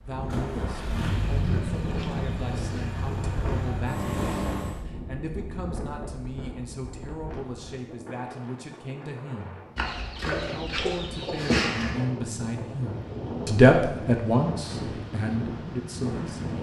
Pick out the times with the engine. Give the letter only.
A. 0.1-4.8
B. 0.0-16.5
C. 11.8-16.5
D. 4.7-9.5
A.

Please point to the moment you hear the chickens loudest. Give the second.
12 s.